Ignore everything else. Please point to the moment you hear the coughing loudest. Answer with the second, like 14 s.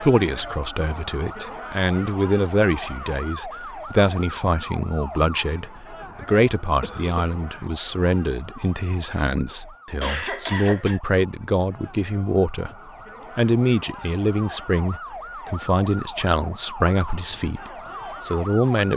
10 s.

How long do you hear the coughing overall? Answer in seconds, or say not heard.
2 s.